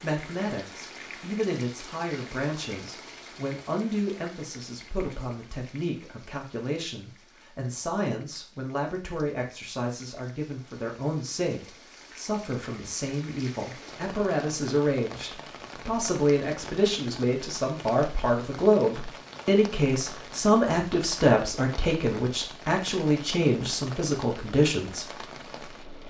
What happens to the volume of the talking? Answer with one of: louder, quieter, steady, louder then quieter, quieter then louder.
louder.